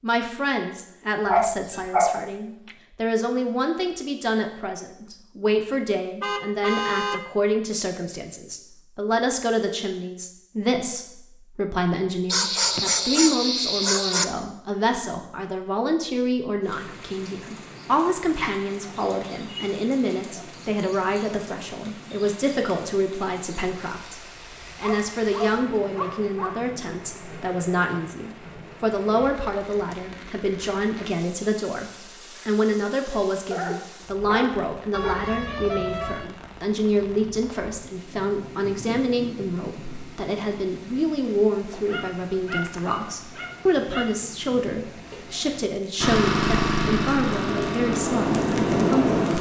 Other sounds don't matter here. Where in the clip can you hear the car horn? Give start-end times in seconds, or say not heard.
6.2-7.2, 34.9-36.3.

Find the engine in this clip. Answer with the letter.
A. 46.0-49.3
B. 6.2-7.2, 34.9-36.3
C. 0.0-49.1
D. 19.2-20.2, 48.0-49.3
A.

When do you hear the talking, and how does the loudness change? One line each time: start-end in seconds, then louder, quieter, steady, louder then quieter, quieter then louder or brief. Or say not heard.
0.0-49.1 steady.